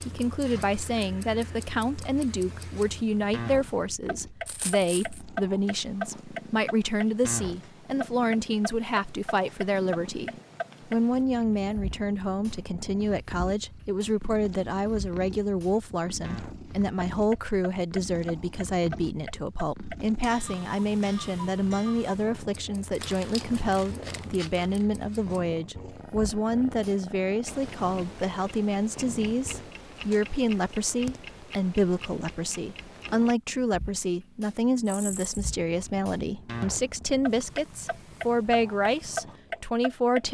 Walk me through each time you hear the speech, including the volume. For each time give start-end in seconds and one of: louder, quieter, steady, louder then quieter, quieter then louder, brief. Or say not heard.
0.1-40.2 steady.